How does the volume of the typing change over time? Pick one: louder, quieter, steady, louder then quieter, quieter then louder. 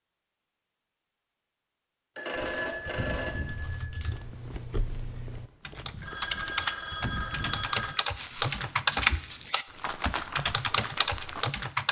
louder then quieter.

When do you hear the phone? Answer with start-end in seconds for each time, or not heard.
2.1-4.0, 6.0-8.0.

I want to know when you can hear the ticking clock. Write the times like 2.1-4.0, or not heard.
not heard.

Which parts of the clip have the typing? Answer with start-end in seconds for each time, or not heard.
3.4-11.8.